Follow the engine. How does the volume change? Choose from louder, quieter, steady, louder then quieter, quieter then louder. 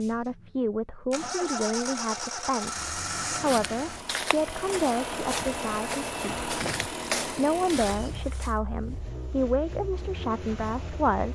quieter.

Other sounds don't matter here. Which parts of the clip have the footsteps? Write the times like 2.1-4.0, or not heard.
3.2-8.6.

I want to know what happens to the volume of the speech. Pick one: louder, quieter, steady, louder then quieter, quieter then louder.
steady.